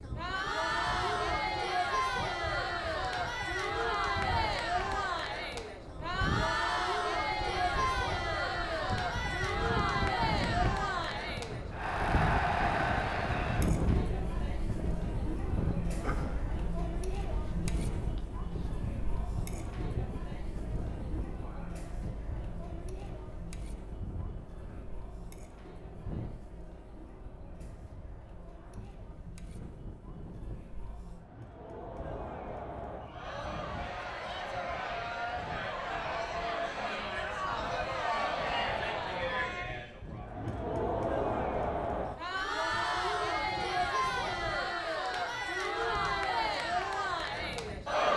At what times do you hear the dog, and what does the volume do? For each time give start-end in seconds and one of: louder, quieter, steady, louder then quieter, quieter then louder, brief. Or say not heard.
not heard.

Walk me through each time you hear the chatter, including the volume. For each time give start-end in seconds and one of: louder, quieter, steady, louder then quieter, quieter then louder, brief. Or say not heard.
0.0-48.1 quieter then louder.